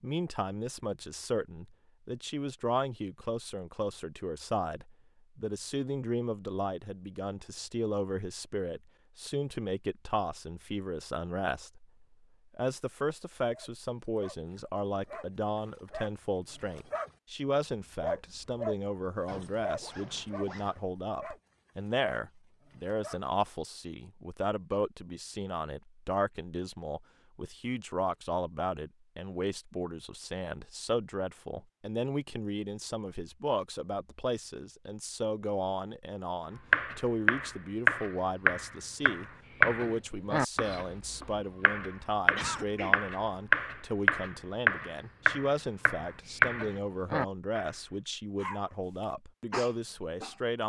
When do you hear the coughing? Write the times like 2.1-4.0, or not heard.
42.2-43.0.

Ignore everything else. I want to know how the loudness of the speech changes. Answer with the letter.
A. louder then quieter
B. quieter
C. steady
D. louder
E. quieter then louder
C.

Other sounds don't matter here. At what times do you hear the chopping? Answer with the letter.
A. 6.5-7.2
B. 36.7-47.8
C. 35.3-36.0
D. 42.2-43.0
B.